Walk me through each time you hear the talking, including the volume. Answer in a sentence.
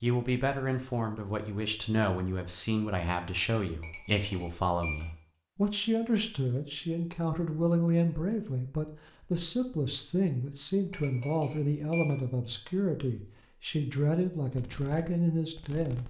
You can hear the talking from 0.0 to 16.0 s, at a steady volume.